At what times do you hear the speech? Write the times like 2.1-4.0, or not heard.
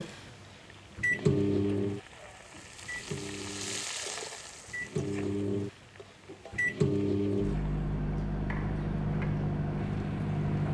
not heard.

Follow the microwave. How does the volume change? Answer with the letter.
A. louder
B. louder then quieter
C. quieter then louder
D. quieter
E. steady
C.